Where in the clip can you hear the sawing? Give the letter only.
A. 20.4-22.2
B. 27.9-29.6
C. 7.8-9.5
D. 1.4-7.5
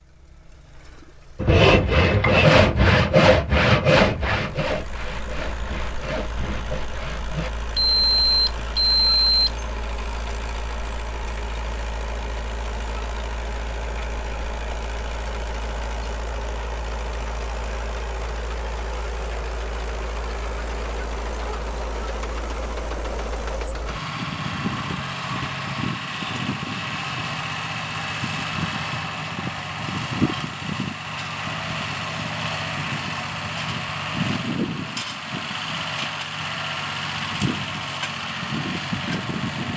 D.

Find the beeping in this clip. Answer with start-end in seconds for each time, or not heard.
7.8-9.5.